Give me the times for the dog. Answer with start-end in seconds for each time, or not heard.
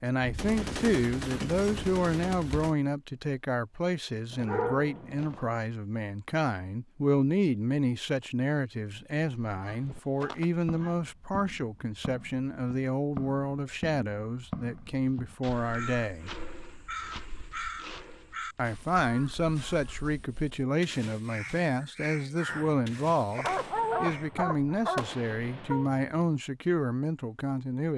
4.3-5.5, 9.6-10.9, 23.4-25.9.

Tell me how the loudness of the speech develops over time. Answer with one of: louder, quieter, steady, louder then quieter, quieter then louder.
steady.